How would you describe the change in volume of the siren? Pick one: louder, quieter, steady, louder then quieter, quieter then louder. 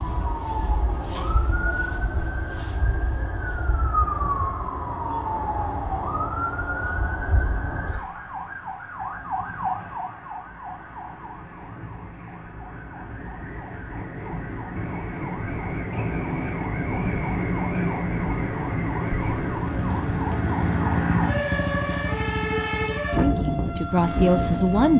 quieter then louder.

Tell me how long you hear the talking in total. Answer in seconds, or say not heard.
2 s.